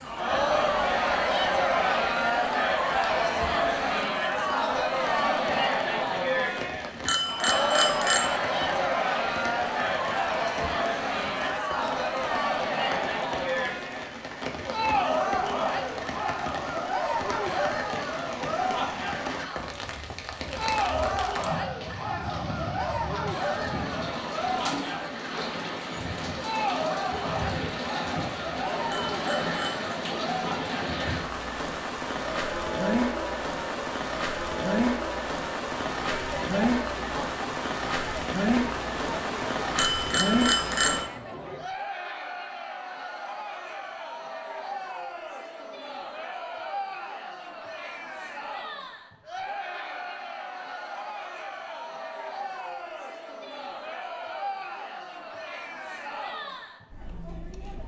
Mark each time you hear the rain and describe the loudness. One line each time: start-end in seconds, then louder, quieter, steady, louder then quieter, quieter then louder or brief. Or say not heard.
0.0-41.0 louder.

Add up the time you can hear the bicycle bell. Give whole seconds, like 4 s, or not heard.
4 s.